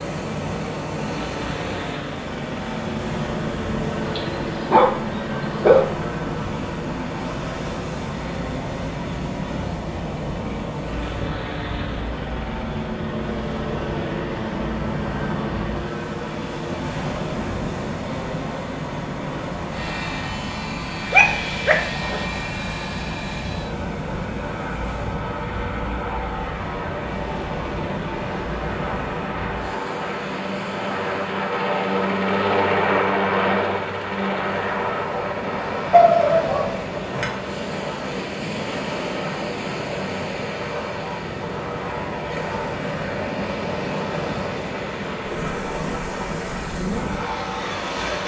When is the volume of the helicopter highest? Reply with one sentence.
The volume of the helicopter peaks at 33 seconds.